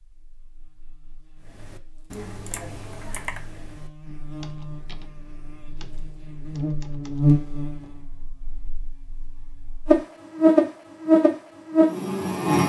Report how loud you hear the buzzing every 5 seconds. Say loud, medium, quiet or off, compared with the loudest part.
quiet, medium, loud.